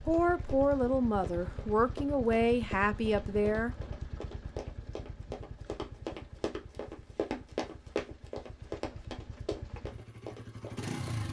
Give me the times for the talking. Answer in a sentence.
The talking can be heard from 0.0 to 3.8 s.